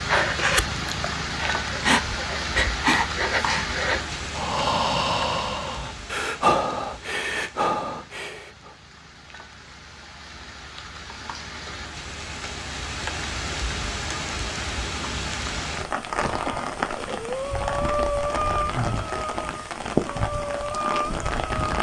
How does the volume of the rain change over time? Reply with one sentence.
The volume of the rain goes down, then up.